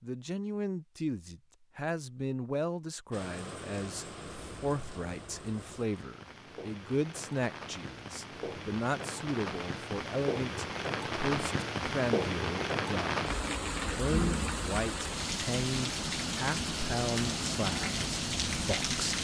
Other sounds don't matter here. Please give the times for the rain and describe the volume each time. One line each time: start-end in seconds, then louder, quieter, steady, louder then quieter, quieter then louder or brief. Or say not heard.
3.1-19.1 louder.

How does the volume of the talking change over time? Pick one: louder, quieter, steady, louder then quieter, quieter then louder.
steady.